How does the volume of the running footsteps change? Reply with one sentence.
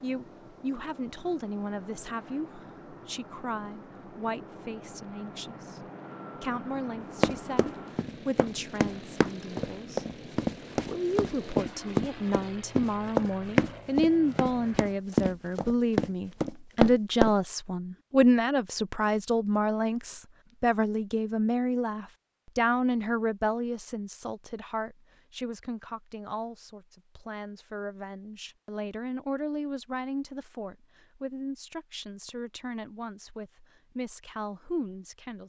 The volume of the running footsteps goes up.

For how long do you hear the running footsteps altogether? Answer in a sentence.
The running footsteps can be heard for 10 seconds in total.